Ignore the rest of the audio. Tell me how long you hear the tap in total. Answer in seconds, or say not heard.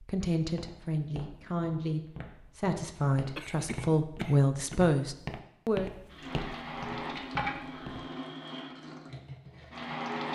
4 s.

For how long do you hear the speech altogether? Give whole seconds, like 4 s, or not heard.
6 s.